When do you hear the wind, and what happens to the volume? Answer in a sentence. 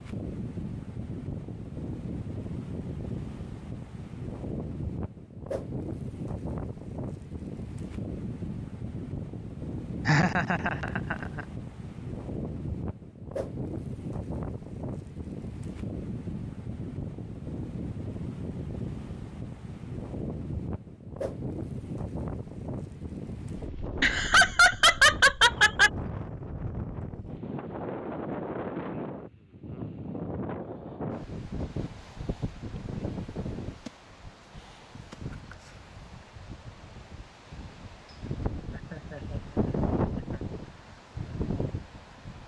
The wind can be heard from 0.0 to 42.4 s, at a steady volume.